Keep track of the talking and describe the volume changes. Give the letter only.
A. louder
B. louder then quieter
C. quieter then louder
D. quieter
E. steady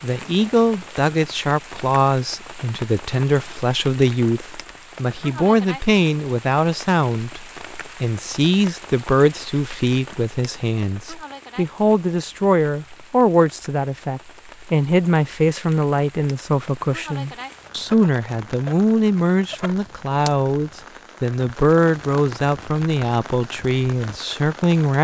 E.